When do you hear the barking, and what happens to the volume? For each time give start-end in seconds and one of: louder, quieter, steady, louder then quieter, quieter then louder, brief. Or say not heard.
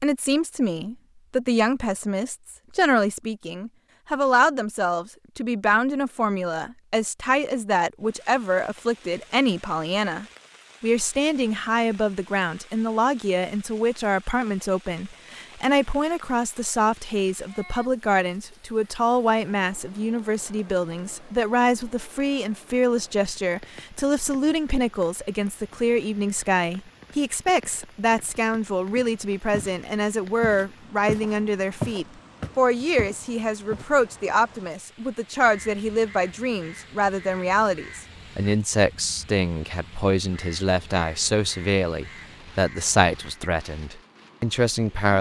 not heard.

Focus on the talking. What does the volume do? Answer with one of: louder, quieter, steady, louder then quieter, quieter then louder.
steady.